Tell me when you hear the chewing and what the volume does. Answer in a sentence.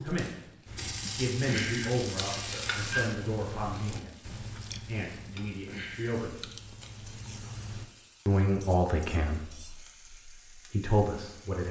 You can hear the chewing from 0.7 to 7.8 s, getting quieter.